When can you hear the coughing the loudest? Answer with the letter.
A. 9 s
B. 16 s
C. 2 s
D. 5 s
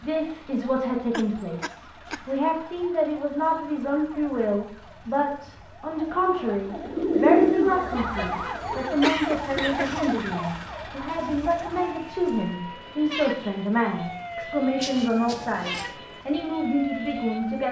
A.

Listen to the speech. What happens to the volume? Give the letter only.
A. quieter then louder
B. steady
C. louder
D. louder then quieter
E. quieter
B.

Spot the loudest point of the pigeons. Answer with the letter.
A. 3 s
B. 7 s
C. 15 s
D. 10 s
B.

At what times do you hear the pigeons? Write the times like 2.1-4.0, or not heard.
6.7-8.9.